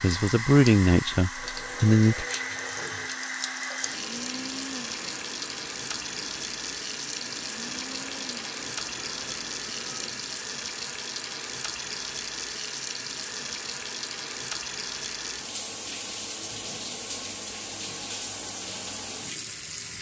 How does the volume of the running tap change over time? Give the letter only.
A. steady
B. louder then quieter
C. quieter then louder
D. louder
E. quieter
A.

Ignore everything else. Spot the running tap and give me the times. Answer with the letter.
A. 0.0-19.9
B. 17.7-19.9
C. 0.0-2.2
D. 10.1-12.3
A.